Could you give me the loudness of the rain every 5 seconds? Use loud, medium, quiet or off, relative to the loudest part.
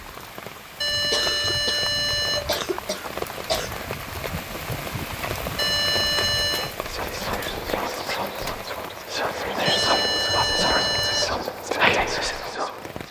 loud, loud, medium.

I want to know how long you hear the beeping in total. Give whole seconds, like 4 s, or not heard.
5 s.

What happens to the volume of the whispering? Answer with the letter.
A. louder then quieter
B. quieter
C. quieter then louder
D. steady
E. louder
E.